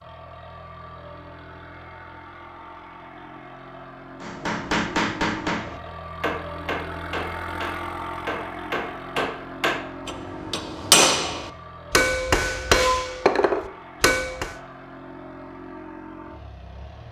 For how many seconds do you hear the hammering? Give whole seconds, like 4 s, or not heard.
10 s.